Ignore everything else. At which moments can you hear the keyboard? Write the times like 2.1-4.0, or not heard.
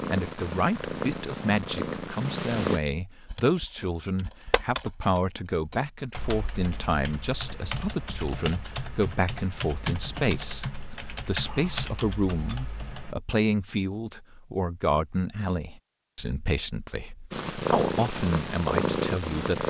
3.2-13.2.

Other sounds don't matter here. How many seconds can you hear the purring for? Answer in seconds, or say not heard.
5 s.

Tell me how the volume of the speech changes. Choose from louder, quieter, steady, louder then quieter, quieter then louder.
steady.